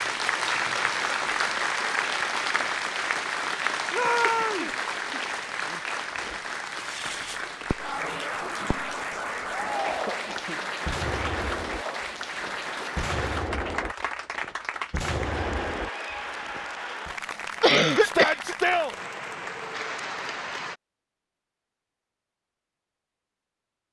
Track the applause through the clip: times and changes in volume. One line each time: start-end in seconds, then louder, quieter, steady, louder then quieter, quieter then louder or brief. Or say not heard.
0.0-20.8 quieter.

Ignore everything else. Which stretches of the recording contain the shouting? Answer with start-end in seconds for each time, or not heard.
3.9-4.7, 9.5-10.4, 18.0-18.9.